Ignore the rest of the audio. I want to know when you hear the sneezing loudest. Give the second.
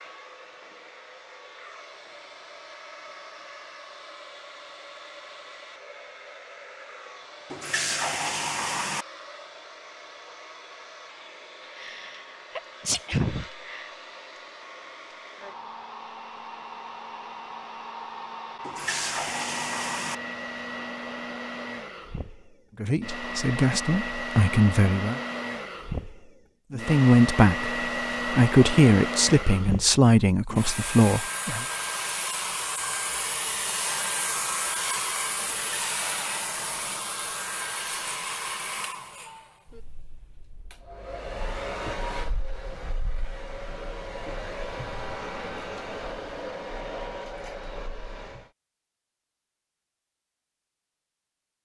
13 s.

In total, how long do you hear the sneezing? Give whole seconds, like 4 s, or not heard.
2 s.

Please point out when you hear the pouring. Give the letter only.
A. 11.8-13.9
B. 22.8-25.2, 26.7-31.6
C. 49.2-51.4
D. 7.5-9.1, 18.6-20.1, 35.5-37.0
D.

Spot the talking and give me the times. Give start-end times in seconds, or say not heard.
22.8-25.2, 26.7-31.6.